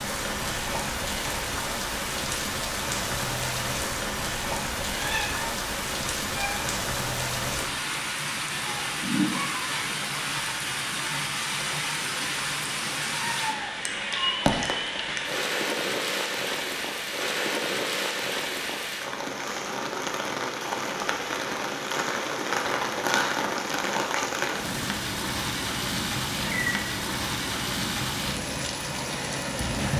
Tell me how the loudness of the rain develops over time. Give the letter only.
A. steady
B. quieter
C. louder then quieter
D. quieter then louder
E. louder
A.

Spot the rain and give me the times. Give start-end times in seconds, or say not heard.
0.0-29.9.